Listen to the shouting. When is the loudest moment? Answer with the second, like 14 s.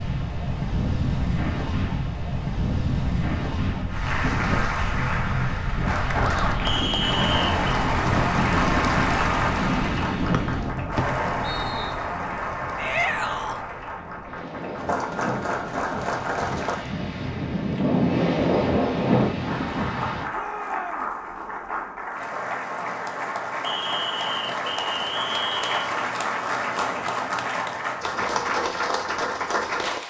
13 s.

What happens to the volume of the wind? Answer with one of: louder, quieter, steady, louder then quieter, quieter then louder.
quieter then louder.